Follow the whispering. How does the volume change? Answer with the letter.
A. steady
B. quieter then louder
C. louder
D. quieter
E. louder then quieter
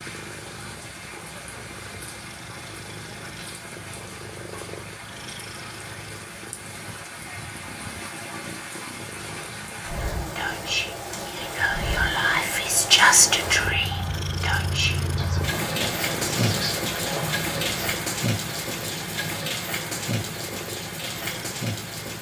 E.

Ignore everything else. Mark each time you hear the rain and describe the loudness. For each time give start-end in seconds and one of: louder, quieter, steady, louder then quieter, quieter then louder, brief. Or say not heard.
0.0-22.1 louder.